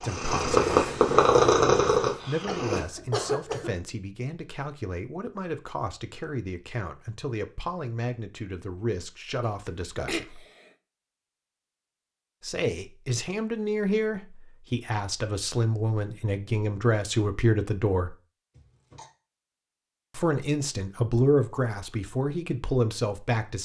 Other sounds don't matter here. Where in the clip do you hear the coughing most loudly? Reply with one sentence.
The loudest moment of the coughing is at 3 seconds.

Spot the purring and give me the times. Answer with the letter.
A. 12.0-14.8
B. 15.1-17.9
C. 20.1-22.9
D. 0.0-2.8
D.